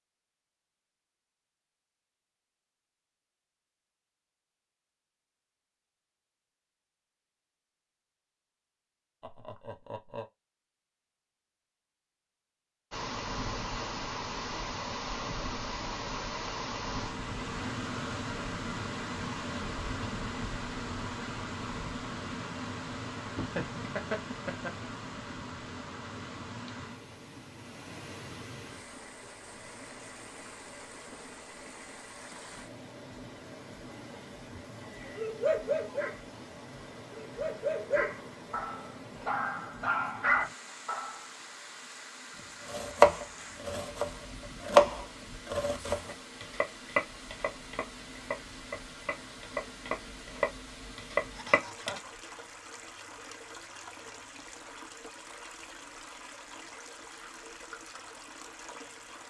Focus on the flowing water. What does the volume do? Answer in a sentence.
The volume of the flowing water goes down.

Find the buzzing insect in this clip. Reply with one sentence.
The buzzing insect can't be heard in this clip.